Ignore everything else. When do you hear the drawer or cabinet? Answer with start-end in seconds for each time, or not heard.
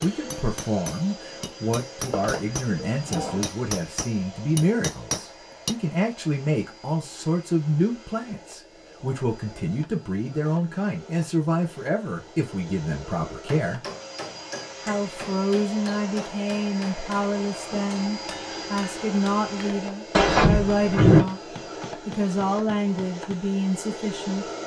2.1-3.5, 20.1-21.2.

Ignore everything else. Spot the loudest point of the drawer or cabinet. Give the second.
21 s.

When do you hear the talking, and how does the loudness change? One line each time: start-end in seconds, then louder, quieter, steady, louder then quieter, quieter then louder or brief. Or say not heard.
0.0-13.8 steady
14.8-24.4 steady.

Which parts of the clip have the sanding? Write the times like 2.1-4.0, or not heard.
not heard.